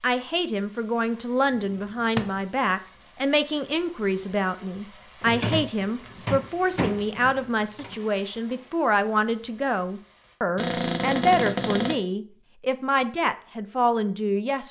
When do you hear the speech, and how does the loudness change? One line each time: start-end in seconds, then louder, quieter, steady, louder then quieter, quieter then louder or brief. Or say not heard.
0.0-14.6 steady.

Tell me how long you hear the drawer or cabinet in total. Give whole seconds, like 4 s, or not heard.
5 s.